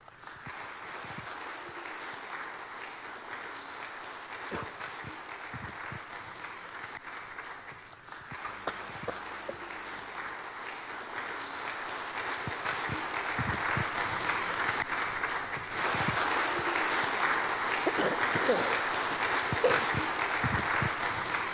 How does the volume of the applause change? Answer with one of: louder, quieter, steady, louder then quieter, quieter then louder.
louder.